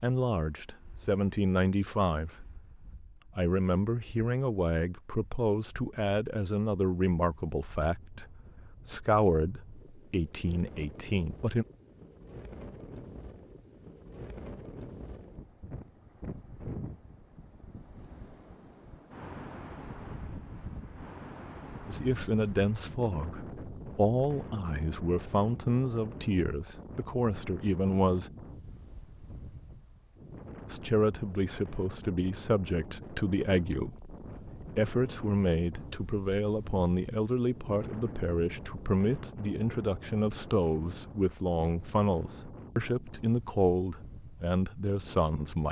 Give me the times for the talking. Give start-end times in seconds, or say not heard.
0.0-11.7, 21.9-28.3, 30.6-45.6.